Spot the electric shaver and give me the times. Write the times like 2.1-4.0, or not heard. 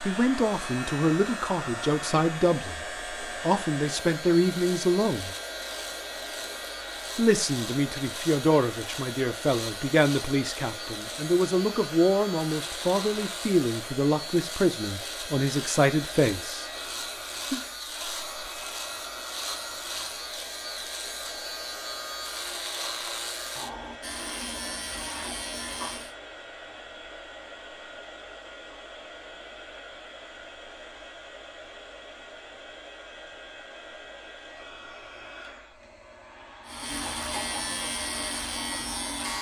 0.0-26.1, 36.6-39.3.